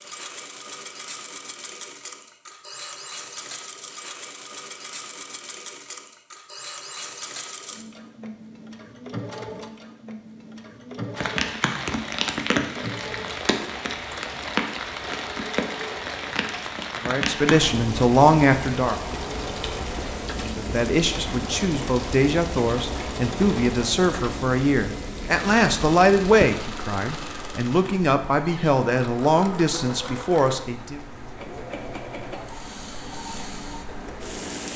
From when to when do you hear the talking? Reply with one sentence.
The talking can be heard from 17.0 to 18.9 s and from 20.3 to 31.0 s.